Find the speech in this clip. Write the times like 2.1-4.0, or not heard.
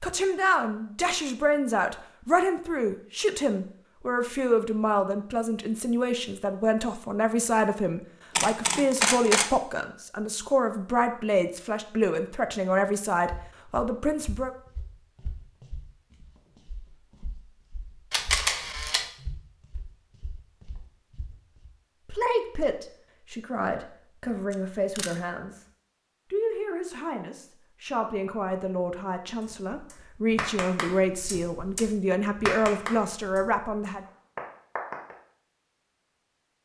0.0-14.6, 22.1-25.6, 26.3-34.0.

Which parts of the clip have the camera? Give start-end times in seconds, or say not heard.
8.3-9.5, 18.1-19.1, 24.5-25.1.